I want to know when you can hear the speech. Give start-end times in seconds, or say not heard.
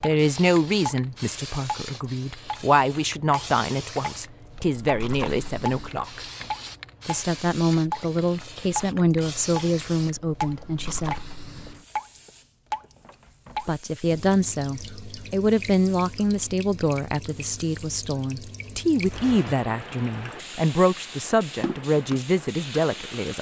0.0-6.2, 7.0-11.2, 13.7-23.3.